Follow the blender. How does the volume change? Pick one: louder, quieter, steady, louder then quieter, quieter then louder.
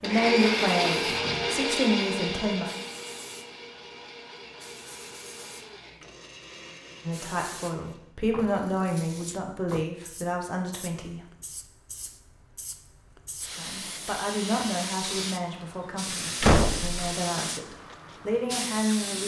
quieter.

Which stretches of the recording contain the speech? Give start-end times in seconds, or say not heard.
0.0-2.6, 7.0-11.2, 13.6-19.2.